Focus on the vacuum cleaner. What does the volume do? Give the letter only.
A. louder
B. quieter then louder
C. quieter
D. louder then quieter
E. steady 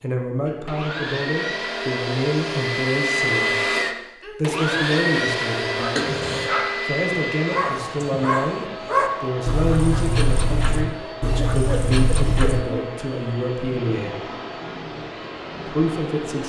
C.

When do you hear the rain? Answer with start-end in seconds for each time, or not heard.
not heard.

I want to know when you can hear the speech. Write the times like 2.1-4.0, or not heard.
0.0-3.5, 4.3-6.2, 6.8-14.2, 15.7-16.4.